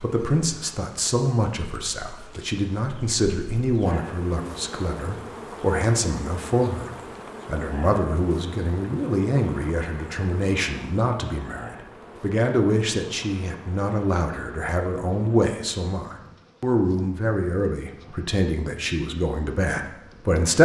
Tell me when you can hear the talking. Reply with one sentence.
The talking can be heard from 0.0 to 20.6 s.